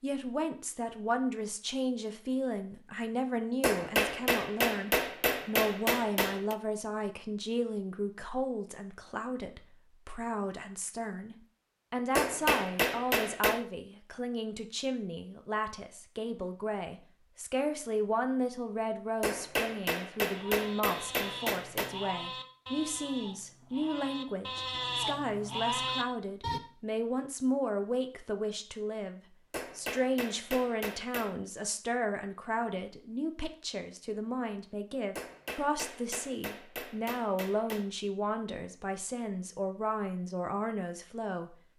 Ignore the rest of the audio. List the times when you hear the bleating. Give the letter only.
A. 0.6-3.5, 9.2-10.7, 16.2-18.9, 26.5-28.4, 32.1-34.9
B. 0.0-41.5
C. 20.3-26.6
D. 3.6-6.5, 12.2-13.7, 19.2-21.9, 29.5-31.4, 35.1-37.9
C.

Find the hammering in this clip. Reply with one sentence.
You can hear the hammering from 3.6 to 6.5 s, from 12.2 to 13.7 s, from 19.2 to 21.9 s, from 29.5 to 31.4 s and from 35.1 to 37.9 s.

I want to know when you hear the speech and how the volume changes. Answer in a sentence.
The speech can be heard from 0.0 to 41.5 s, at a steady volume.